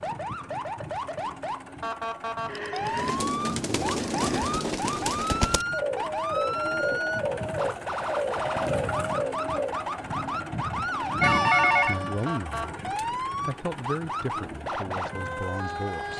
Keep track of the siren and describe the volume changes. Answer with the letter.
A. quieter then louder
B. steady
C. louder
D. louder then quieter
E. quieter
B.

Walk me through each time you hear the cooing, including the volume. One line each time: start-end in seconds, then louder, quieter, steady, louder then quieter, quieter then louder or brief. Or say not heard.
2.9-9.9 steady.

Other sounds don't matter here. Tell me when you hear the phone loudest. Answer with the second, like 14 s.
12 s.